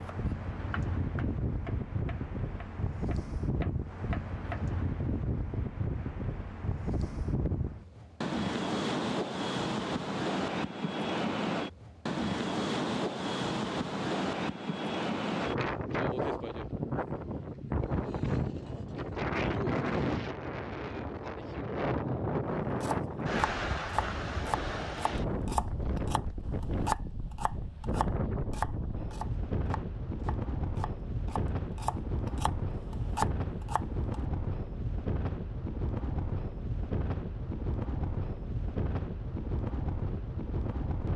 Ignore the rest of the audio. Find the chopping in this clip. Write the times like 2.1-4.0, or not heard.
0.0-4.6, 22.8-34.2.